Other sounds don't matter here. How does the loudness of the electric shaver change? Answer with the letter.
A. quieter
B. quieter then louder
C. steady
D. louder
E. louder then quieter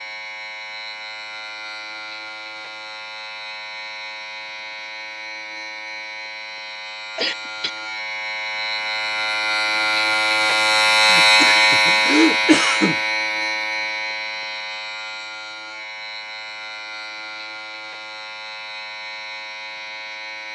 E.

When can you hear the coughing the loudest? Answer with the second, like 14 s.
12 s.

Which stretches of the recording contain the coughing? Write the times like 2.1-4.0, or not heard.
7.2-7.8, 11.1-12.9.